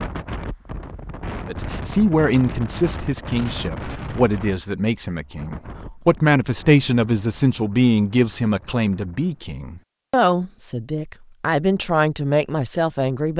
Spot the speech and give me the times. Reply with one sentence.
You can hear the speech from 1.4 to 13.3 s.